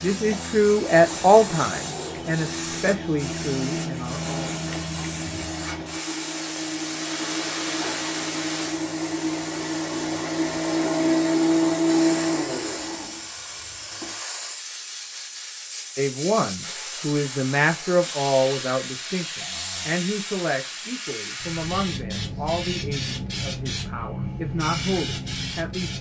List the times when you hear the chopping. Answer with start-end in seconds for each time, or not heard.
not heard.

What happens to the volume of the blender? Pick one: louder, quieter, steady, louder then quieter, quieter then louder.
louder.